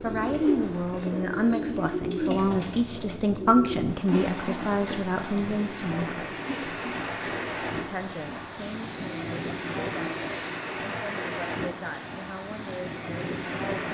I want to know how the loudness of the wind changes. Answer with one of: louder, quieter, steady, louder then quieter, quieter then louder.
louder.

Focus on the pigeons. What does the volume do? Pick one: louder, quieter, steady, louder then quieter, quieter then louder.
quieter.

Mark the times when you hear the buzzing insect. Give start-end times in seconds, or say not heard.
not heard.